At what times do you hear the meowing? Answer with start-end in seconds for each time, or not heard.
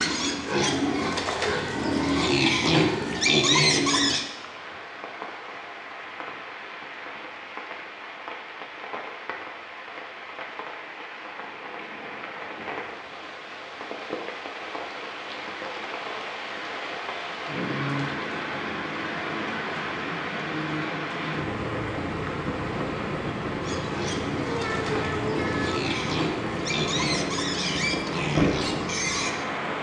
24.4-25.9.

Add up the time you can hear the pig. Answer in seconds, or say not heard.
10 s.